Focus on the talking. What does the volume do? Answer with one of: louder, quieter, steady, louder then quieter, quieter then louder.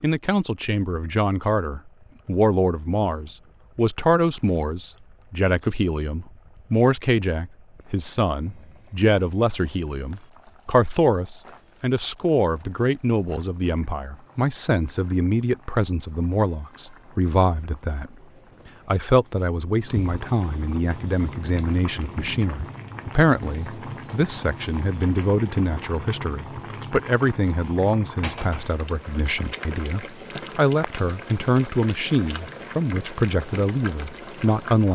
steady.